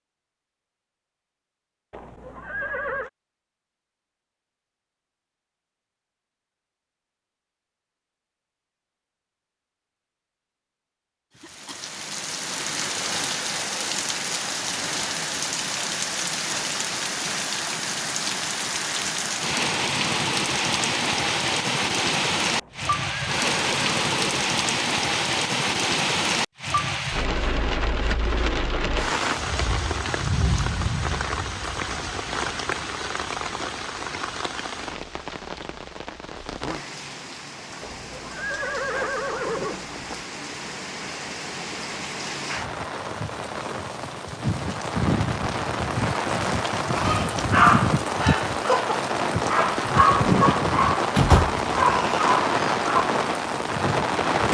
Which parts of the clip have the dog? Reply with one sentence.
You can hear the dog from 47.0 to 53.0 s.